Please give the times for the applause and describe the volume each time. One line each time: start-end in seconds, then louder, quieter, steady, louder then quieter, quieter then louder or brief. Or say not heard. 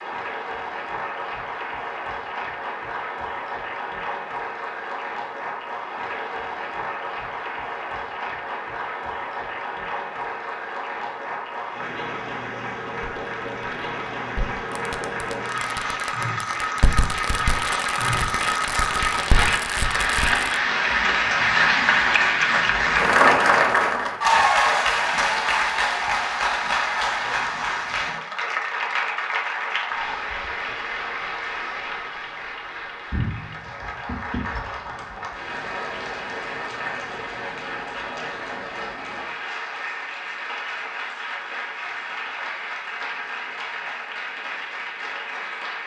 0.0-45.8 louder then quieter.